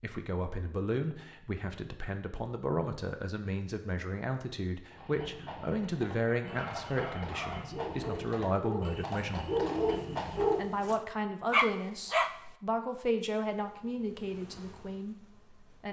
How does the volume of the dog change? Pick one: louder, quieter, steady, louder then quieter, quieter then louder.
louder.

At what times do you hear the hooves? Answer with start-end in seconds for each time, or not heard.
4.9-10.7.